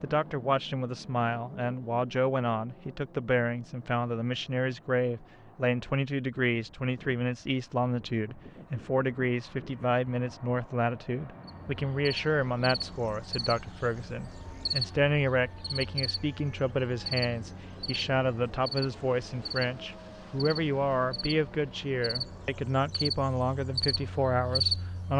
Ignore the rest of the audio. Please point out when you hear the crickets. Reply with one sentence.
The crickets can be heard from 11.4 to 25.1 s.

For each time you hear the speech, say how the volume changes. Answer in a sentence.
The speech can be heard from 0.0 to 25.1 s, at a steady volume.